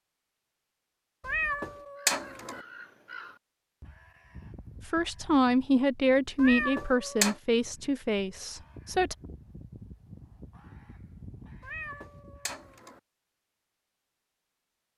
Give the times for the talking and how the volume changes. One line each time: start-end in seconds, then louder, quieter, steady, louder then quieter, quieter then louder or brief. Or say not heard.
4.8-9.2 quieter.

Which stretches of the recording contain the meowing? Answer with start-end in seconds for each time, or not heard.
1.2-2.6, 6.3-7.3, 11.6-13.0.